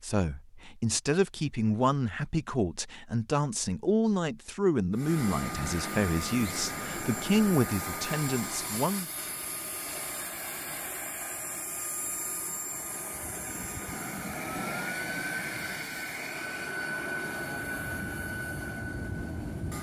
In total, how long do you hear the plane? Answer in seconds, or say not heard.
15 s.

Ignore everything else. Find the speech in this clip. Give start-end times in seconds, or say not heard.
0.0-9.1.